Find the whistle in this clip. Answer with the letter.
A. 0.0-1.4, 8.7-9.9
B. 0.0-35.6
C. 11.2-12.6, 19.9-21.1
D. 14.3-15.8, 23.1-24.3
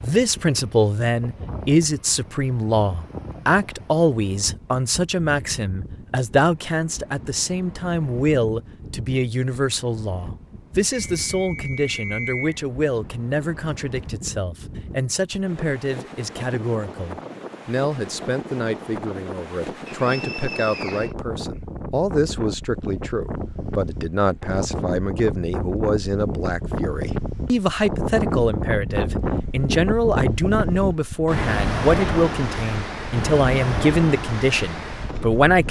C.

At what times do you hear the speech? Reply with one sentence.
You can hear the speech from 0.0 to 35.6 s.